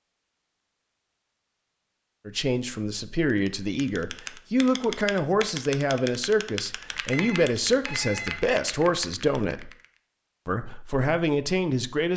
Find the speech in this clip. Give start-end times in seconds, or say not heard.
2.2-9.7, 10.4-12.1.